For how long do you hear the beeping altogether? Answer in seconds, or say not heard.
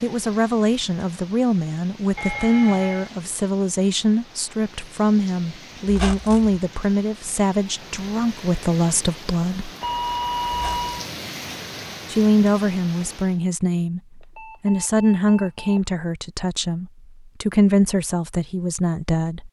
4 s.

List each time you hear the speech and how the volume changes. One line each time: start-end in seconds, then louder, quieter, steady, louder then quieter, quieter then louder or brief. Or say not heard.
0.0-9.7 steady
12.1-19.4 steady.